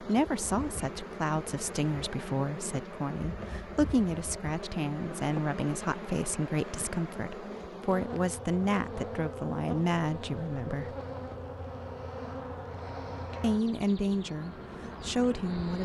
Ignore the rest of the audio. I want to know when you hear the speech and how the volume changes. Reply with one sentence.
You can hear the speech from 0.0 to 10.9 s, at a steady volume; and briefly from 13.4 to 15.8 s.